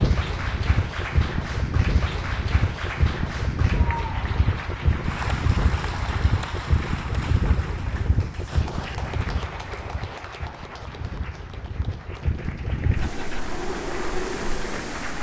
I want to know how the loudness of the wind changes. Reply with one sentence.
The volume of the wind goes down, then up.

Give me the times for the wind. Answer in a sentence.
The wind can be heard from 0.0 to 15.1 s.